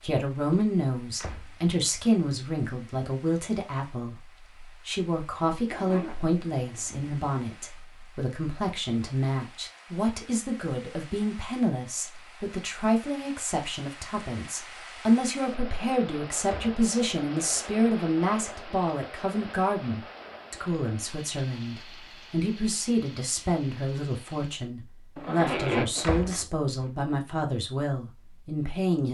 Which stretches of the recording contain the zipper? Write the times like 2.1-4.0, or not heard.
5.7-7.1, 25.1-26.4.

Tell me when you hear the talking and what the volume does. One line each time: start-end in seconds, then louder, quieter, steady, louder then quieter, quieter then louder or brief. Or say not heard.
0.0-29.0 steady.